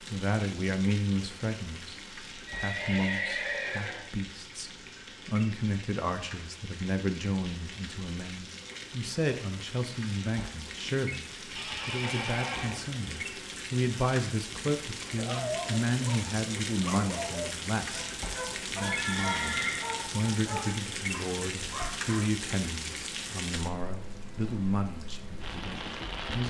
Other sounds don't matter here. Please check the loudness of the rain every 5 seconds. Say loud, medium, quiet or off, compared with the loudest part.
medium, medium, loud, loud, loud, loud.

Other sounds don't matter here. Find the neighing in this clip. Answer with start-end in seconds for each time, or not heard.
2.5-4.0, 11.6-13.0, 18.8-19.9.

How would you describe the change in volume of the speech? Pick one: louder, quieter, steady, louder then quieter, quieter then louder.
steady.